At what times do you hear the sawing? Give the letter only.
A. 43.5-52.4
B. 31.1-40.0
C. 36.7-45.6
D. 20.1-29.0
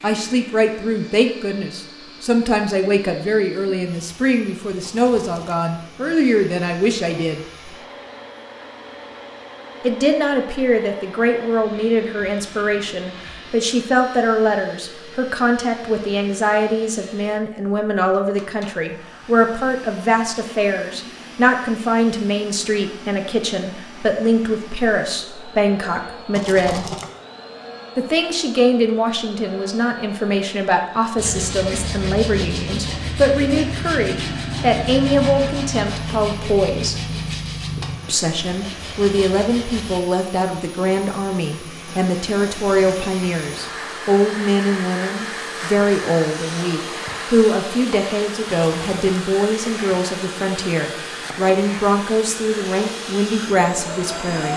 B.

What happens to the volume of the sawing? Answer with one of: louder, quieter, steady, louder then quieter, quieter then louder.
quieter.